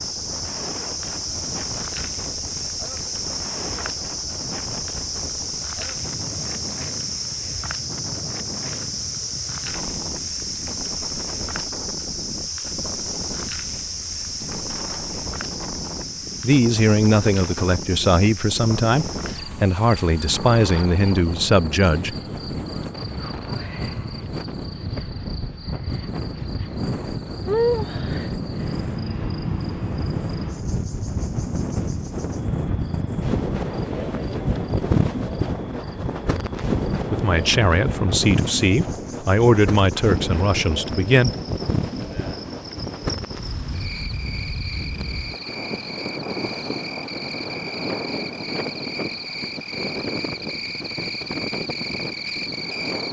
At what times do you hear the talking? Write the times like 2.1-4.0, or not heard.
16.4-22.1, 36.9-41.3.